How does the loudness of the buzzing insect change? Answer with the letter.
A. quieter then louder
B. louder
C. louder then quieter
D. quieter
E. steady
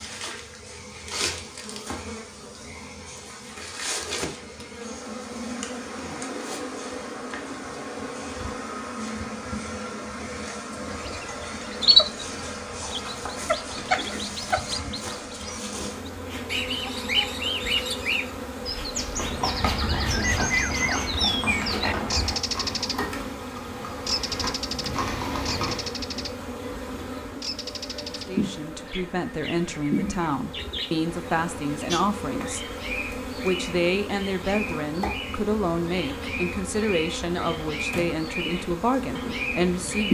E.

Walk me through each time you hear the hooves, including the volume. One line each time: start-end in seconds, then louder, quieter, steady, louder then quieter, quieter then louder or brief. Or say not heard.
19.1-25.9 quieter then louder.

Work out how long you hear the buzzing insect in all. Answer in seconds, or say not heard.
40 s.